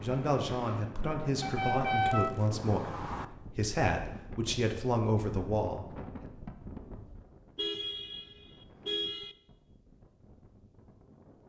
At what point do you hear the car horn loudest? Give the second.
2 s.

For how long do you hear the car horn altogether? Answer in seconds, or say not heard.
4 s.